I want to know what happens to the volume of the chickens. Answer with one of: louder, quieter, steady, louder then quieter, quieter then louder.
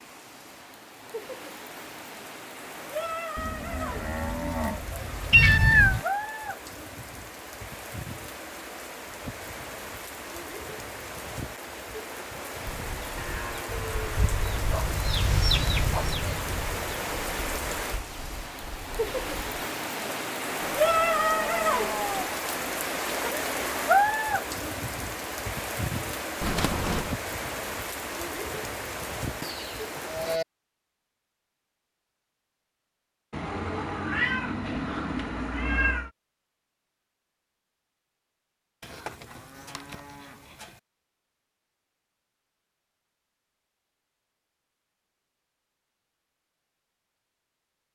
louder then quieter.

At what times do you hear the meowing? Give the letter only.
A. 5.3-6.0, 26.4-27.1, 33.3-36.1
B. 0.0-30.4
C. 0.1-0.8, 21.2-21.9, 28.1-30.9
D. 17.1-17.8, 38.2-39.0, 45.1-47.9
A.